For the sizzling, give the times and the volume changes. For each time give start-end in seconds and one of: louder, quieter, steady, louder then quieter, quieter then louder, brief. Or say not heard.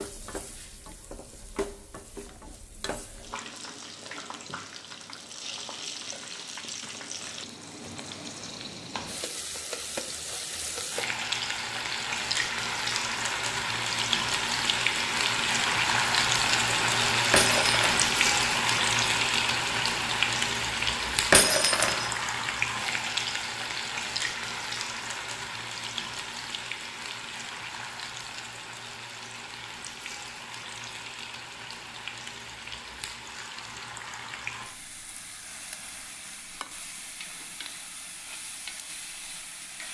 0.0-39.8 louder then quieter.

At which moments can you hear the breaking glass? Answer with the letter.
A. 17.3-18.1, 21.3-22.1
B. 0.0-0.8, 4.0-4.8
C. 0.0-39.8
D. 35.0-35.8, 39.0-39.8
A.